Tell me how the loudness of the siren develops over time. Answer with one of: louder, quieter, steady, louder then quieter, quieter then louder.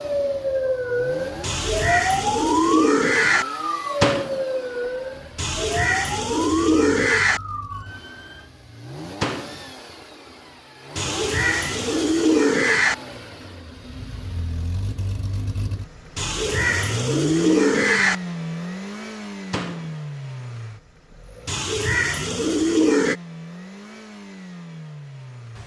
quieter.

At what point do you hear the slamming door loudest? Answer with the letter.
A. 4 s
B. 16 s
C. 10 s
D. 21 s
A.